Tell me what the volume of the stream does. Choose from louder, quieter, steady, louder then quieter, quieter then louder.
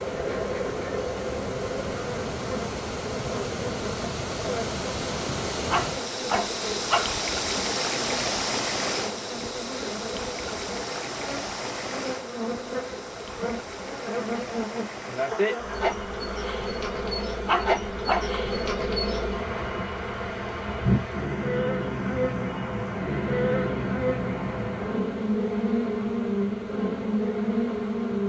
quieter.